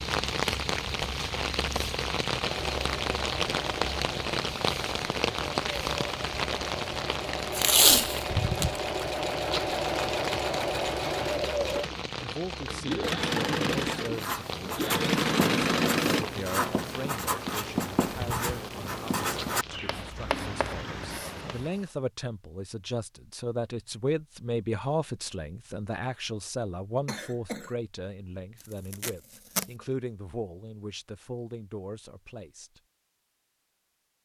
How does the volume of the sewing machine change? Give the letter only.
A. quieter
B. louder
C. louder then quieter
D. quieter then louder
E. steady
B.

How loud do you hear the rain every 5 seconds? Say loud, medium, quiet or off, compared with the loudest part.
loud, loud, medium, medium, medium, off, off.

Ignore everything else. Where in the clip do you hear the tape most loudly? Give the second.
8 s.